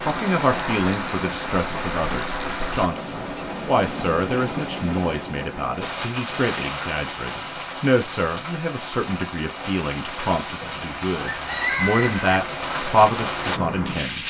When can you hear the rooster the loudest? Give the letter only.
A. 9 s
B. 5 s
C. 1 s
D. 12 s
D.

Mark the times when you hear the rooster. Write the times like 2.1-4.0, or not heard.
10.6-12.4.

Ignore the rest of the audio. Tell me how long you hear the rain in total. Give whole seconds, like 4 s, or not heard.
14 s.